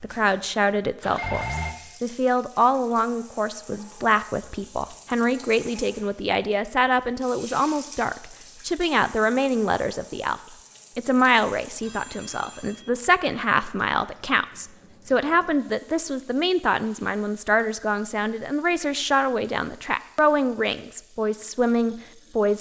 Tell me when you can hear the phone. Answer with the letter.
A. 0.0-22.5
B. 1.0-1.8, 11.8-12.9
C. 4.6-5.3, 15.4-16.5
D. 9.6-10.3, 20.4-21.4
B.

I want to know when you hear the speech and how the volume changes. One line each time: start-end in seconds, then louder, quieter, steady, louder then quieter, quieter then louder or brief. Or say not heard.
0.0-22.5 steady.